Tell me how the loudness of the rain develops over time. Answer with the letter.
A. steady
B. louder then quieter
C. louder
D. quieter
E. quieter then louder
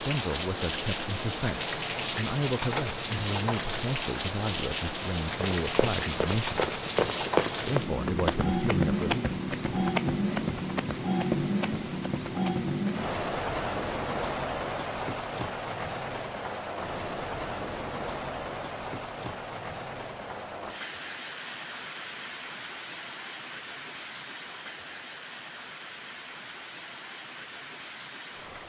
D.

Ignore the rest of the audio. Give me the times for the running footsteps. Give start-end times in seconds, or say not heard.
5.4-12.9.